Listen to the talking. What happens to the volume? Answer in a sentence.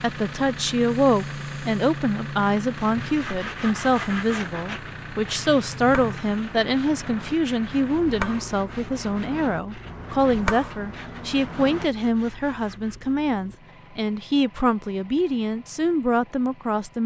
The loudness of the talking stays about the same.